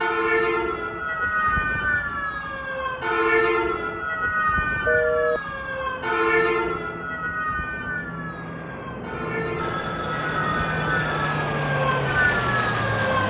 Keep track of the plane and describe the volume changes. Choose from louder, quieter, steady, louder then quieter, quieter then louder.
louder.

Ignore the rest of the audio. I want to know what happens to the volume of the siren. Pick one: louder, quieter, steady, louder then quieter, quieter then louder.
quieter then louder.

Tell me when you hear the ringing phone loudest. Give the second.
5 s.